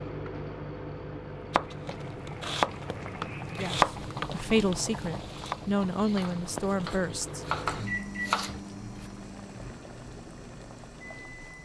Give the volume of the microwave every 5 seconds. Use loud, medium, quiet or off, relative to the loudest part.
loud, loud, medium.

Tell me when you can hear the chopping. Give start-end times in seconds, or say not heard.
1.5-9.1.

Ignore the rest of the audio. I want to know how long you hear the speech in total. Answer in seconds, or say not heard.
4 s.